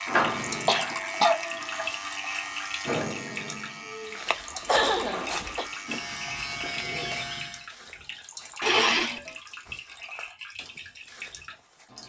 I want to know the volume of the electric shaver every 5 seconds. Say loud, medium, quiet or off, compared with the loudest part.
loud, loud, off.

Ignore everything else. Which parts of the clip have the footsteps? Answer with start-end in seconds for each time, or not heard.
4.1-11.9.